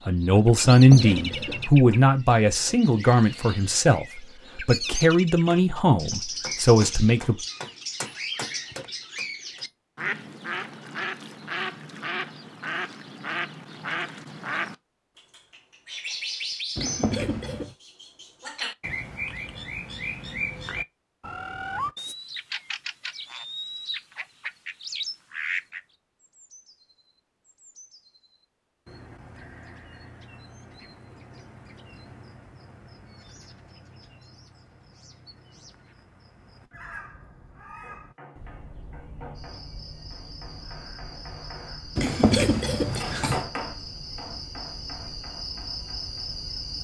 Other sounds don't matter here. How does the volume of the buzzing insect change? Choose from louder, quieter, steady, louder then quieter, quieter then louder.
louder.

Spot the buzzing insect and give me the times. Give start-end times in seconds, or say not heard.
39.3-46.7.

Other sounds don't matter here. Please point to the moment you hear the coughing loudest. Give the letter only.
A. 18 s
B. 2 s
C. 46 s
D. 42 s
D.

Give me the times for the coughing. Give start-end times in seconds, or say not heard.
0.7-1.7, 16.8-17.8, 42.0-43.5.